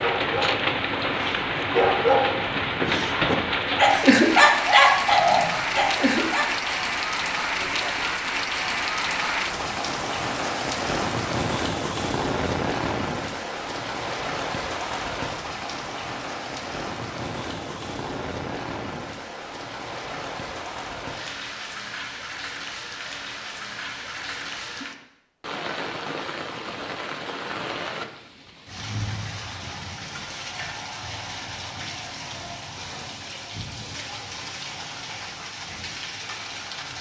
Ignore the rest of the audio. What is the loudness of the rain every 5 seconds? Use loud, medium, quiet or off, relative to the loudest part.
loud, loud, loud, medium, medium, medium, medium, medium.